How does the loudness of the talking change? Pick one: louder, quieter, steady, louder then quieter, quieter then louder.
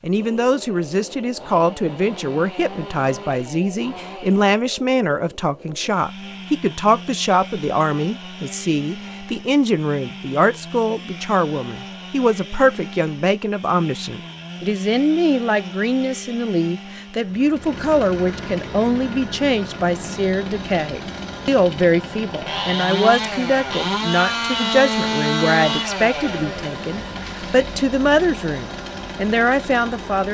steady.